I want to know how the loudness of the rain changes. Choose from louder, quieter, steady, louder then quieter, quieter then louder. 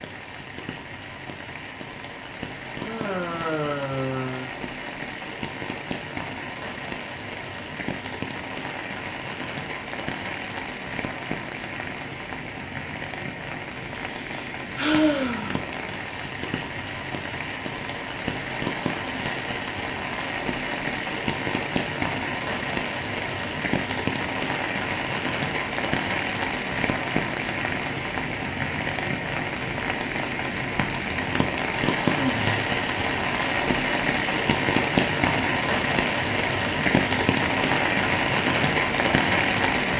louder.